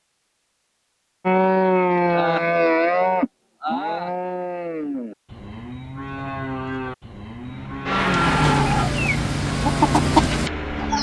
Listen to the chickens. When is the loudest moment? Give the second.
10 s.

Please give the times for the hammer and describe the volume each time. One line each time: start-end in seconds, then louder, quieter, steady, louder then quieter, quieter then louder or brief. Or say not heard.
not heard.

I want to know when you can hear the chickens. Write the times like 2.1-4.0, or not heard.
7.9-10.9.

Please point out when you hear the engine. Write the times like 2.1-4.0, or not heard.
7.5-10.9.